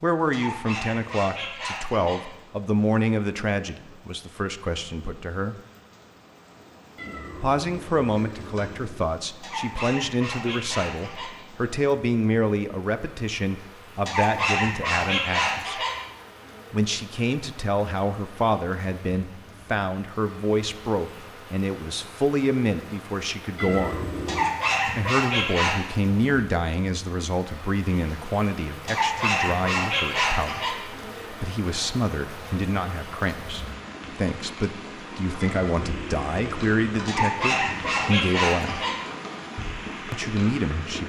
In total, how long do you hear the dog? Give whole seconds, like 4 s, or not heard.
11 s.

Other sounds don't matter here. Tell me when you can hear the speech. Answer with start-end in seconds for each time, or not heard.
0.0-5.5, 7.4-15.8, 16.7-24.1, 24.9-38.9, 40.1-41.0.